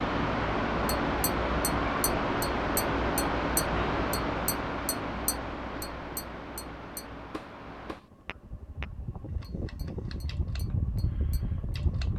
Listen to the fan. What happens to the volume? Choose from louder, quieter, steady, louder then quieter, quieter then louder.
quieter then louder.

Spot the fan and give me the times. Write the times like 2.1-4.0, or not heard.
0.0-12.1.